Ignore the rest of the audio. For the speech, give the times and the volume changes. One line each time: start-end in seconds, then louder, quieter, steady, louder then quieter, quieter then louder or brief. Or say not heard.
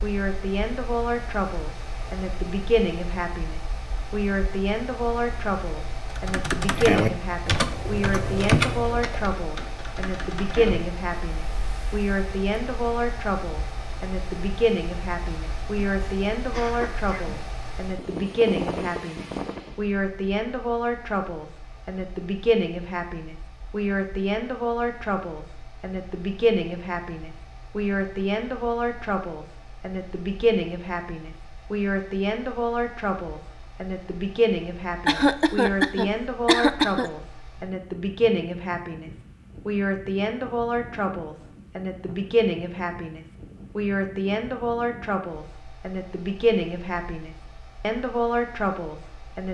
0.0-49.4 steady.